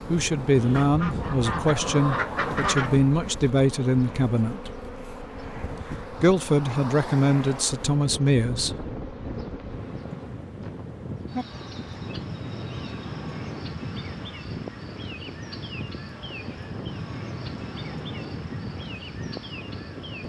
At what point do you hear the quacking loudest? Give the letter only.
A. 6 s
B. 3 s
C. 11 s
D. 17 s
B.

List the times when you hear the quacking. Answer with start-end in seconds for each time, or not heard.
0.7-3.0.